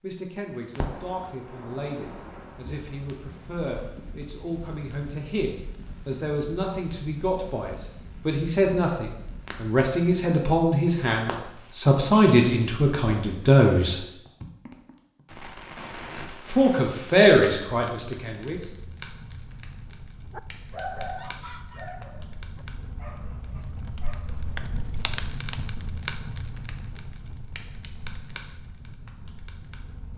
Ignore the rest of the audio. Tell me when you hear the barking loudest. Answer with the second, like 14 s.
21 s.